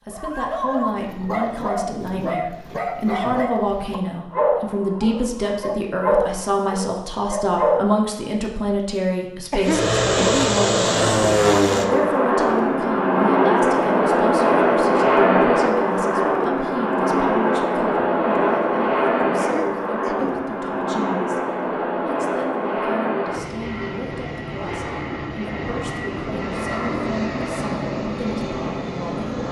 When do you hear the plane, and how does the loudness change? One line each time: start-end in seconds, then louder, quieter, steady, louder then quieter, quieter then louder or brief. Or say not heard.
9.6-29.4 quieter.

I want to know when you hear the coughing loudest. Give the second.
10 s.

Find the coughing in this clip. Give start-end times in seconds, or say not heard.
9.5-10.4, 19.4-20.4.